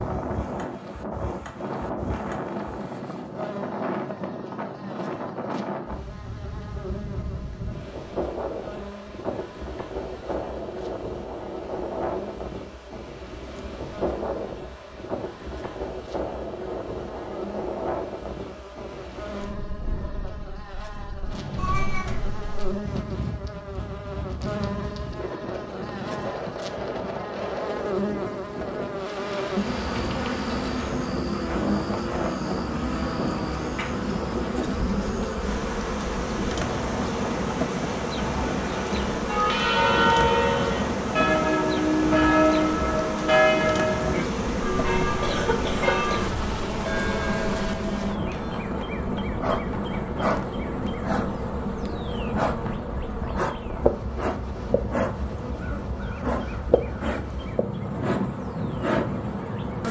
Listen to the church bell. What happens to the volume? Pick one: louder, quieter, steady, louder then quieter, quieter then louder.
quieter.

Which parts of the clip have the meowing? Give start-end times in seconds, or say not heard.
21.6-22.8.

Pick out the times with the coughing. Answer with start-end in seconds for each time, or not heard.
45.0-46.1.